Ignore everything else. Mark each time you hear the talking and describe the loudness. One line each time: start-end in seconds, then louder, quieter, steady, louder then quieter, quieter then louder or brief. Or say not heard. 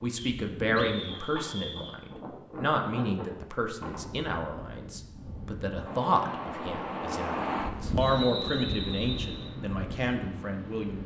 0.0-11.0 steady.